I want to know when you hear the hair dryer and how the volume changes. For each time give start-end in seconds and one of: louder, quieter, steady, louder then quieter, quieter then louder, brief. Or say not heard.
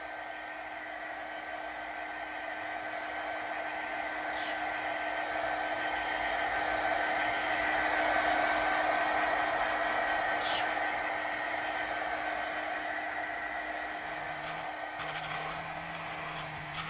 0.0-16.8 louder then quieter.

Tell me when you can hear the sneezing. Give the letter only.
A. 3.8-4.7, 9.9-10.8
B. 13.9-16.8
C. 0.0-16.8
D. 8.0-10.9
A.